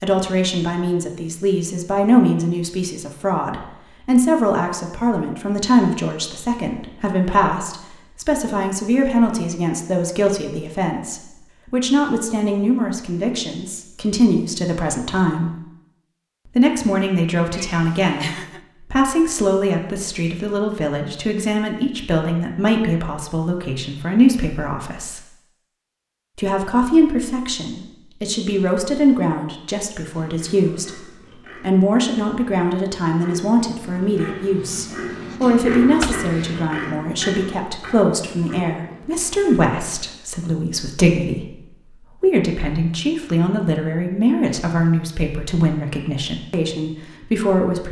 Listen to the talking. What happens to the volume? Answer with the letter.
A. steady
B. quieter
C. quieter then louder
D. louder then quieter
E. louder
A.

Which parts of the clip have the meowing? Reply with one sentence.
The meowing can be heard from 17.5 to 18.6 s and from 36.0 to 36.6 s.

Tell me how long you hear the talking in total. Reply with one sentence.
The talking can be heard for 46 seconds in total.